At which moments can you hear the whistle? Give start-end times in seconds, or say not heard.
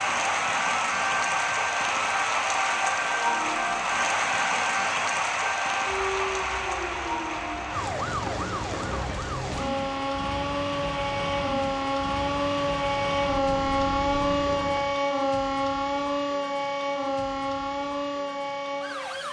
not heard.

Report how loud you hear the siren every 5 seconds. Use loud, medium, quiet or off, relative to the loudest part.
medium, medium, loud, loud.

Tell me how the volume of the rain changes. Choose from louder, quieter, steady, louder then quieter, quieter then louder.
quieter.